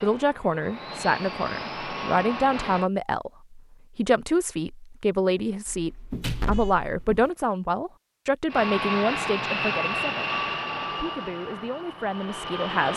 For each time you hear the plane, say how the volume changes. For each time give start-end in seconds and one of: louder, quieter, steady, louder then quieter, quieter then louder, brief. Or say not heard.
0.0-2.9 brief
8.5-12.9 quieter.